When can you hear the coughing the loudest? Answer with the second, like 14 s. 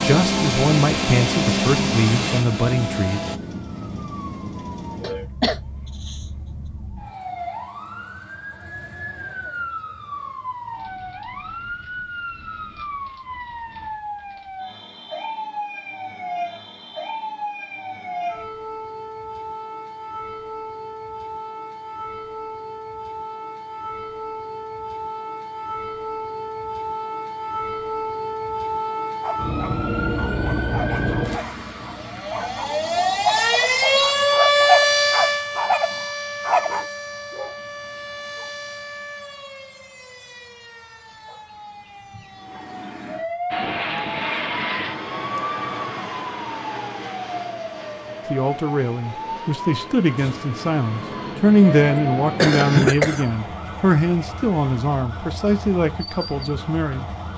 53 s.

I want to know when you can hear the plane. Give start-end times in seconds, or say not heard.
0.0-3.4, 43.5-52.7.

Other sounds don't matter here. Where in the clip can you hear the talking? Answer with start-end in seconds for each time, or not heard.
0.0-3.2, 48.3-57.0.